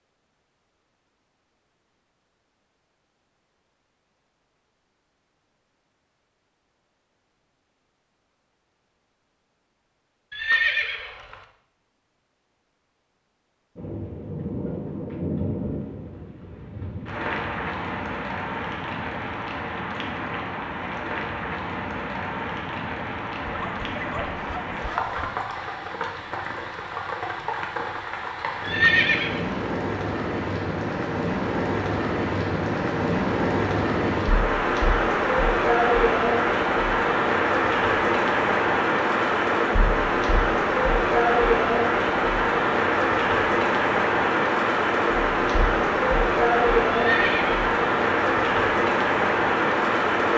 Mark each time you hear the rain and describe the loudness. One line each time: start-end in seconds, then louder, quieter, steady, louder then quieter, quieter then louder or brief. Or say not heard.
13.8-50.3 louder.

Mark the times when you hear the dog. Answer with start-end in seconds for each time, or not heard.
23.4-25.6.